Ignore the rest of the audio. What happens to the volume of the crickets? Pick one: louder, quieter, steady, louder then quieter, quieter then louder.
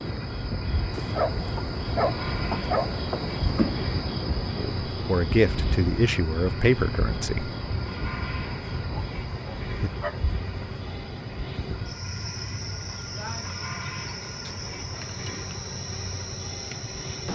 quieter.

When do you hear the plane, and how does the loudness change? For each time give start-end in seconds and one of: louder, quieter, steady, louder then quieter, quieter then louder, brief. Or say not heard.
0.0-17.3 steady.